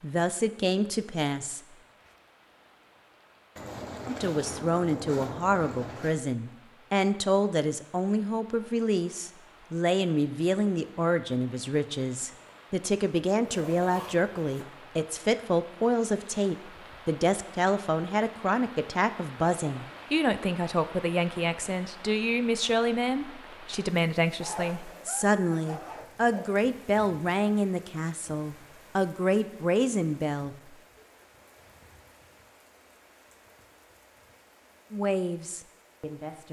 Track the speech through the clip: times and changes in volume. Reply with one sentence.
The speech can be heard briefly from 0.0 to 1.6 s; from 4.0 to 30.6 s, at a steady volume; and briefly from 34.9 to 36.4 s.